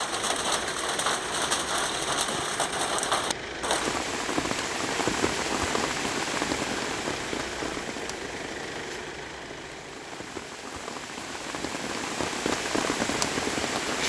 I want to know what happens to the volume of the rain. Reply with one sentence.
The volume of the rain goes down, then up.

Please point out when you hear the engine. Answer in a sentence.
You can hear the engine from 0.0 to 14.0 s.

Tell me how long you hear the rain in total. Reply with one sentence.
The rain can be heard for 14 seconds in total.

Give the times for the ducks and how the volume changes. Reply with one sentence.
The ducks can't be heard in this clip.